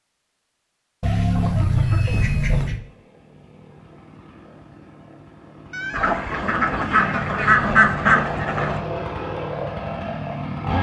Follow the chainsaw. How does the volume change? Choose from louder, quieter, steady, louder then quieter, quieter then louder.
louder.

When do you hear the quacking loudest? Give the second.
8 s.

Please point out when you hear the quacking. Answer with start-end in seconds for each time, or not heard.
1.0-2.8, 5.9-8.8.